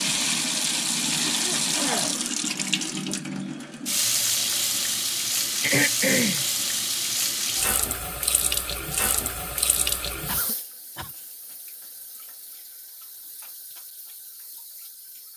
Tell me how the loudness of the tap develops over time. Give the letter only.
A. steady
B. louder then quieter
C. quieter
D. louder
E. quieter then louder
C.